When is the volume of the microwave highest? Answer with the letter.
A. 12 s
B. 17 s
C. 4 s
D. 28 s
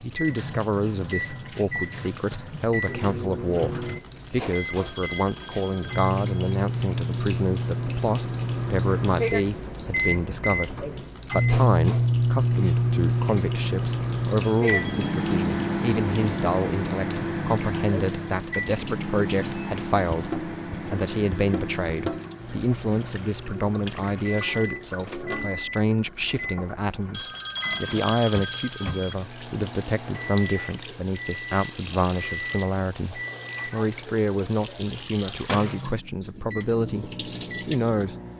A.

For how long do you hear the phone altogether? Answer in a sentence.
You can hear the phone for 5 seconds altogether.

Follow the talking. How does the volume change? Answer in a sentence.
The volume of the talking stays about the same.